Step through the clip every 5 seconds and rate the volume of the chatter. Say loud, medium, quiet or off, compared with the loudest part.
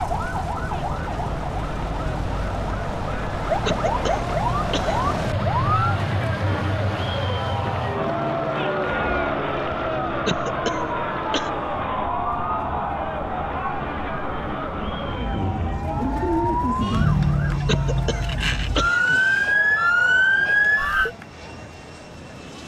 medium, loud, loud, medium, quiet.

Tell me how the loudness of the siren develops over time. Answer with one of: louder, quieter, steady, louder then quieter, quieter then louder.
louder.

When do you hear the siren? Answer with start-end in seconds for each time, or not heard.
0.0-21.1.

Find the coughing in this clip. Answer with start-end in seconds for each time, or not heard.
3.6-5.0, 10.2-11.5, 17.6-19.2.